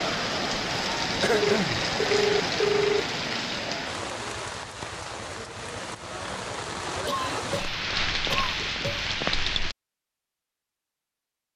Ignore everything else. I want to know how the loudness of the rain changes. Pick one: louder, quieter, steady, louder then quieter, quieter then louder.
quieter then louder.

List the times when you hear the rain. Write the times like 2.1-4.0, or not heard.
0.0-9.8.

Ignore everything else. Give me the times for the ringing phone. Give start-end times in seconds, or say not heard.
1.4-3.0.